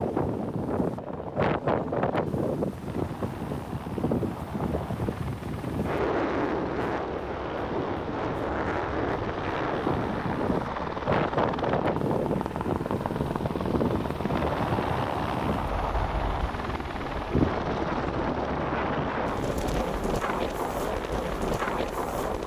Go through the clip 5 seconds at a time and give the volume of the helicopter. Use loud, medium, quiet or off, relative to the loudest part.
medium, medium, loud, loud, medium.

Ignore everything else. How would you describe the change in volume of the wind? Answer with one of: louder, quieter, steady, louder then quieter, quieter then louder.
steady.